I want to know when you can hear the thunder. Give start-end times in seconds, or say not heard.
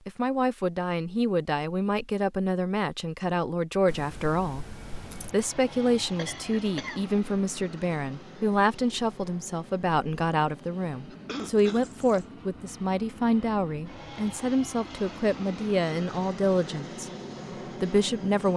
not heard.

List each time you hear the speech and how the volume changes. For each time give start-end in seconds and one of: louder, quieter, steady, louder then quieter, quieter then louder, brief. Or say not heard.
0.1-17.1 steady
17.8-18.5 brief.